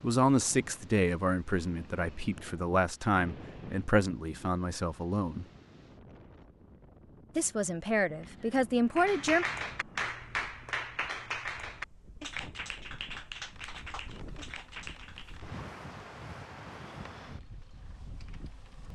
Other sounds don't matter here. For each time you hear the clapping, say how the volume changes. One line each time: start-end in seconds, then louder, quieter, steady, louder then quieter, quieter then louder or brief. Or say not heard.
8.9-15.4 quieter.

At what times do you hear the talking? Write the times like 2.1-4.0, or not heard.
0.0-5.5, 7.3-9.4.